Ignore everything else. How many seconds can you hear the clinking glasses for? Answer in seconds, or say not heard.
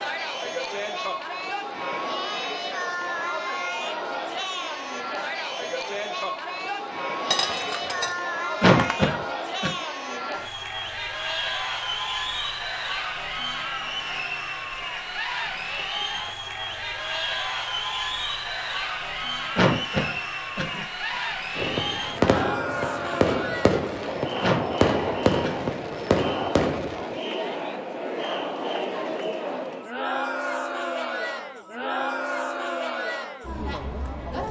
2 s.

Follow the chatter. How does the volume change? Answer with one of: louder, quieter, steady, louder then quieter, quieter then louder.
steady.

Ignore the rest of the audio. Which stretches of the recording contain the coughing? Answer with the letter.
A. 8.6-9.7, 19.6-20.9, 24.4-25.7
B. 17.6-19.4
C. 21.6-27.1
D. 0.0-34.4
A.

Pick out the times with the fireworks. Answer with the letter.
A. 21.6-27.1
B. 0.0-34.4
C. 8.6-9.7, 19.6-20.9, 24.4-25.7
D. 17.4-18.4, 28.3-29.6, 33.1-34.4
A.